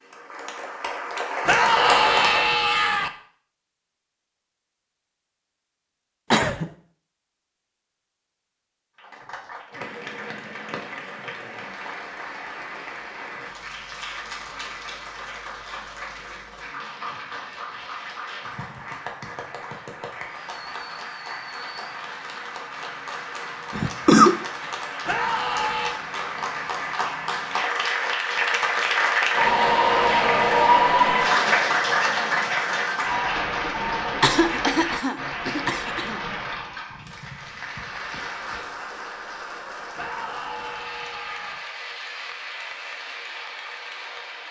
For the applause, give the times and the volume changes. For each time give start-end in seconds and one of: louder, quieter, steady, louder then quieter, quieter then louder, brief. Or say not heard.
0.0-2.6 brief
8.9-44.4 louder then quieter.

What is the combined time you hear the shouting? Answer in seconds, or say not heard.
4 s.